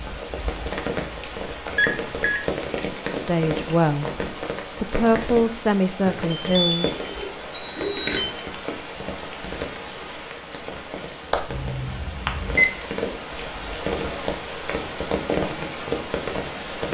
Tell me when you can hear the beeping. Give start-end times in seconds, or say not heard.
1.8-2.4, 6.0-8.3, 11.5-12.7.